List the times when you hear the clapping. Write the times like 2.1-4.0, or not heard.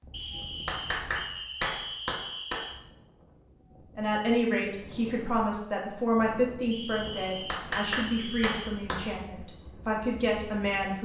0.7-2.6, 7.5-9.1.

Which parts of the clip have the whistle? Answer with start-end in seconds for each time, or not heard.
0.1-2.8, 6.7-8.8.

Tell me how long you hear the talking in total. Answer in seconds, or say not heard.
7 s.